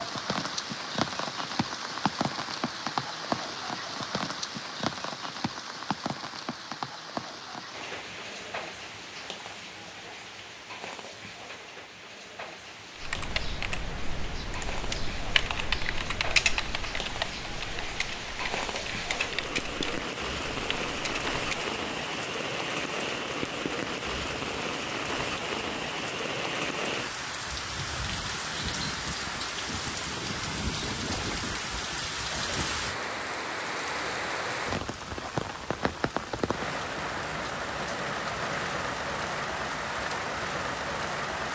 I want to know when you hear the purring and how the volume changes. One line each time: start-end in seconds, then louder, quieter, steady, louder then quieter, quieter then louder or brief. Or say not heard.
not heard.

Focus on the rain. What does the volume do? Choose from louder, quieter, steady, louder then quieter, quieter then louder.
quieter then louder.